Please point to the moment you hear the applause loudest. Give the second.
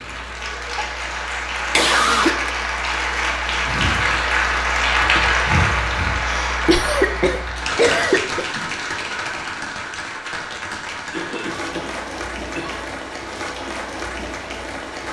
5 s.